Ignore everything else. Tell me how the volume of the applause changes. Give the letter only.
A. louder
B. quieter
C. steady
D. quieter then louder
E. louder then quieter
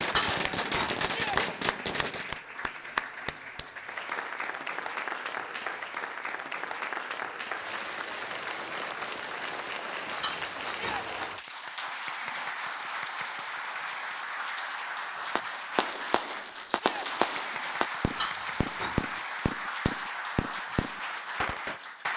C.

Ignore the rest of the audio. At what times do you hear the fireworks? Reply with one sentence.
The fireworks can be heard from 0.0 to 2.4 s and from 15.2 to 21.8 s.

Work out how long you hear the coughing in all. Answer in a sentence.
The coughing can be heard for 3 seconds in total.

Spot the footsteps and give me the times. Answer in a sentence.
You can't hear the footsteps here.